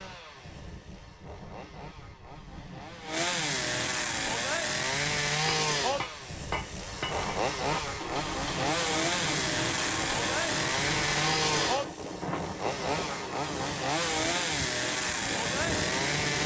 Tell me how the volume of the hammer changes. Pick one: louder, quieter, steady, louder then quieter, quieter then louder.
steady.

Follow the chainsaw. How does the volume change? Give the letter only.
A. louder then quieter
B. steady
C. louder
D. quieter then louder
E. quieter
C.